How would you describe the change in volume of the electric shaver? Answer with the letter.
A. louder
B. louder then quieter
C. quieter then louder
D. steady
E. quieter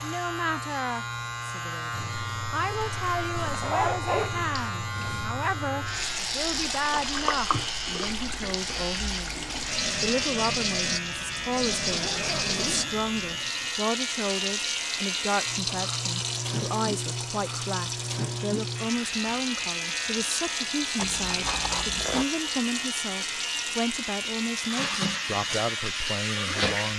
D.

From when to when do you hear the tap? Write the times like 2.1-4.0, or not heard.
1.9-26.9.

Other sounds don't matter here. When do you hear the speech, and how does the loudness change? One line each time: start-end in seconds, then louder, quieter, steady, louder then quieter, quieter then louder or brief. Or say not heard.
0.0-26.9 steady.